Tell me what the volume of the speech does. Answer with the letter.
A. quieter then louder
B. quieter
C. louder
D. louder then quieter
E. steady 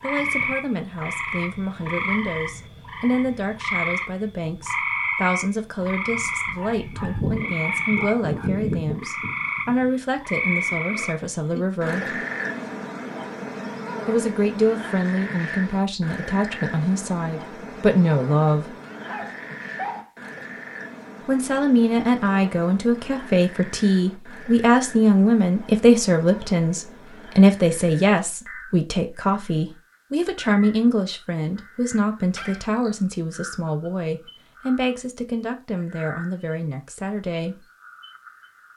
D.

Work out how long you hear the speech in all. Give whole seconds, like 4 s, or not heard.
33 s.